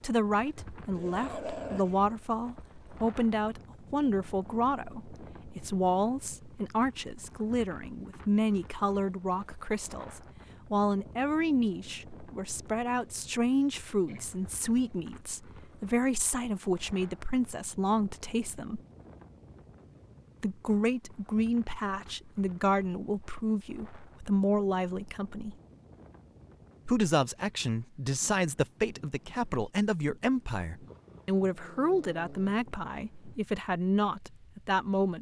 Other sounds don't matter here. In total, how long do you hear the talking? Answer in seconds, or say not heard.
32 s.